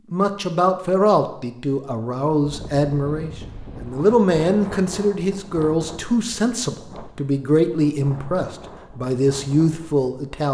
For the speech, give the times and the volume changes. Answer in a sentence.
You can hear the speech from 0.1 to 10.5 s, at a steady volume.